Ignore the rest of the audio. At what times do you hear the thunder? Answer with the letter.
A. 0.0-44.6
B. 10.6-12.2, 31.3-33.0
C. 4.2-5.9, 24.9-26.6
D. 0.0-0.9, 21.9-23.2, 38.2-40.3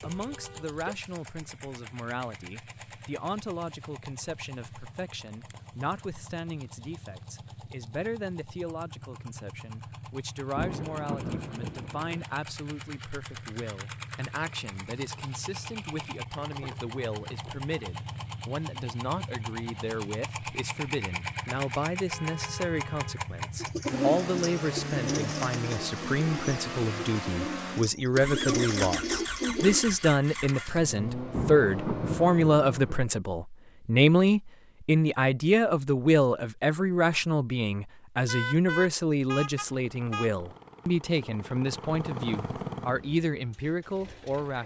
B.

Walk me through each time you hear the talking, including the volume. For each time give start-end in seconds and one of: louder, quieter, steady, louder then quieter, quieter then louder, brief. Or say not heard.
0.0-44.6 louder.